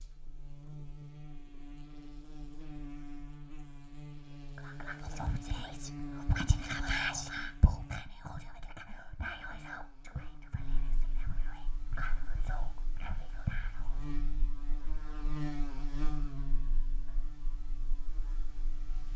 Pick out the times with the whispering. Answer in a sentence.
The whispering can be heard from 4.5 to 14.1 s.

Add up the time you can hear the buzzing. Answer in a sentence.
You can hear the buzzing for 19 seconds altogether.